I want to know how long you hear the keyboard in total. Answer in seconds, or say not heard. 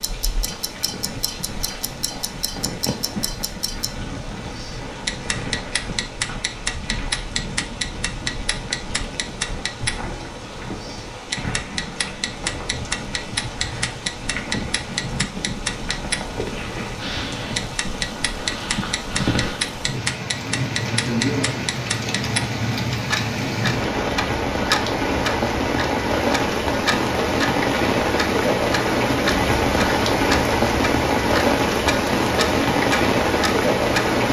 not heard.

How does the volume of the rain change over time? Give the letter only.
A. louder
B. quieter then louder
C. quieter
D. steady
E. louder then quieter
A.